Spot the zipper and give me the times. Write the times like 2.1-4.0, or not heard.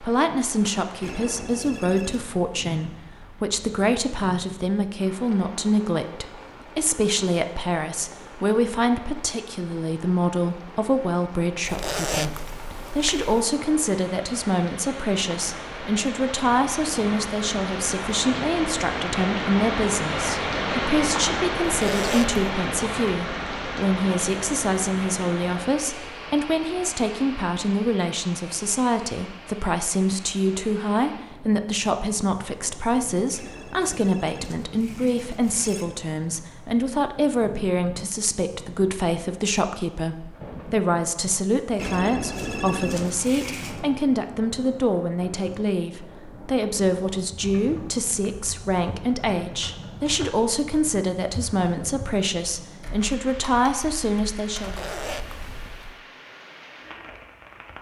11.7-13.4, 21.6-22.4, 54.5-56.0.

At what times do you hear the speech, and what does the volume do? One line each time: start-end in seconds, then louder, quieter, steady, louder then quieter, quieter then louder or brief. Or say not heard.
0.0-54.9 steady.